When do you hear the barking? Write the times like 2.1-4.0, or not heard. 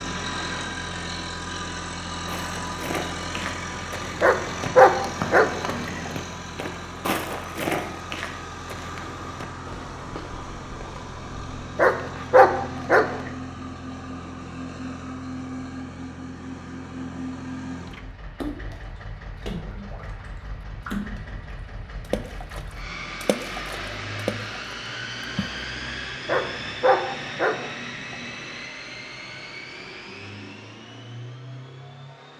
4.2-6.1, 11.8-13.3, 26.2-28.2.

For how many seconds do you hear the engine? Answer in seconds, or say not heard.
32 s.